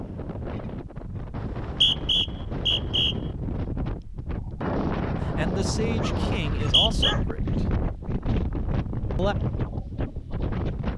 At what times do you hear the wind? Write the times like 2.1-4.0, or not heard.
0.0-10.9.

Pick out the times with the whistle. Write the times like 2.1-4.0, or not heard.
1.4-3.1, 6.5-7.2.